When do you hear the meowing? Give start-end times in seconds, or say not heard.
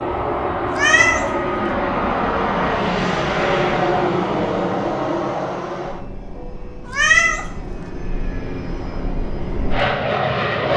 0.7-1.7, 6.8-7.8.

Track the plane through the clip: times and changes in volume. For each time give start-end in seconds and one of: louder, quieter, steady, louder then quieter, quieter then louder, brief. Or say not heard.
0.0-10.7 quieter then louder.